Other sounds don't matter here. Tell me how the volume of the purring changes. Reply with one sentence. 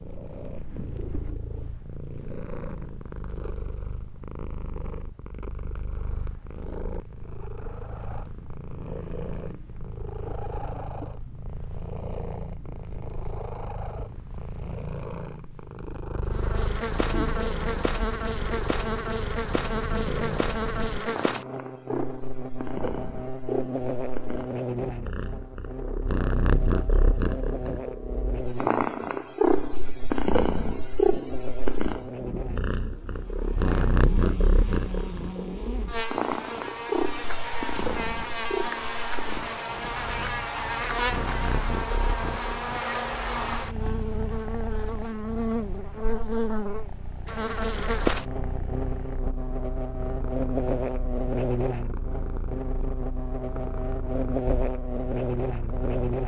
The volume of the purring goes up, then down.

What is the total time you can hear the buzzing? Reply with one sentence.
The buzzing can be heard for 40 seconds in total.